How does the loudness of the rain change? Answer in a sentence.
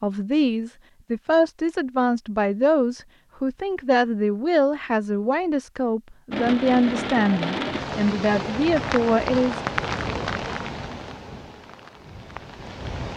The loudness of the rain goes down.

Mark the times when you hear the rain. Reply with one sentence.
The rain can be heard from 6.3 to 13.1 s.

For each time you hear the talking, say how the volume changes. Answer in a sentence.
You can hear the talking from 0.0 to 9.6 s, at a steady volume.